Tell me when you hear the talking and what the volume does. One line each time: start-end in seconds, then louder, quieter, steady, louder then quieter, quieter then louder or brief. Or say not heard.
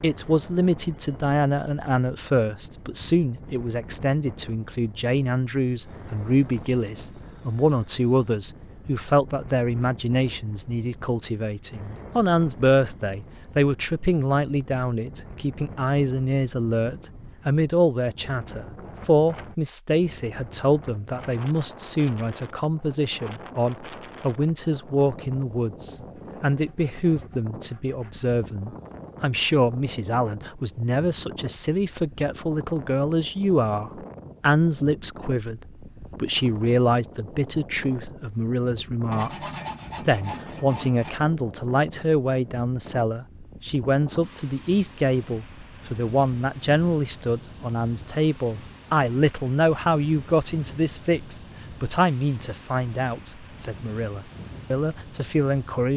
0.0-55.9 steady.